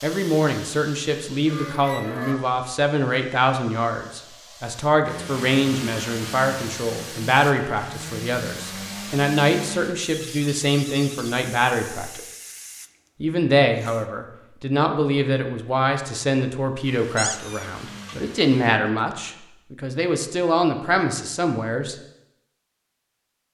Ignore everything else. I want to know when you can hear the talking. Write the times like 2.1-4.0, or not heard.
0.0-12.2, 13.2-21.9.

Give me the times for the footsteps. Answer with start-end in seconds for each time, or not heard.
not heard.